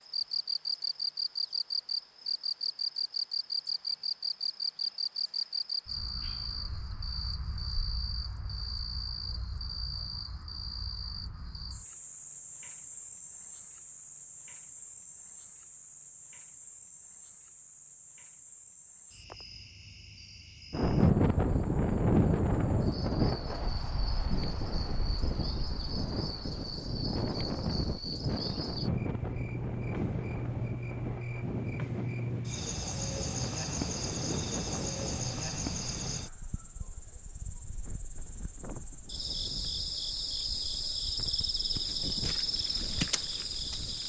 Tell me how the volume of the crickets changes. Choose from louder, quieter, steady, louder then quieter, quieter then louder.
quieter then louder.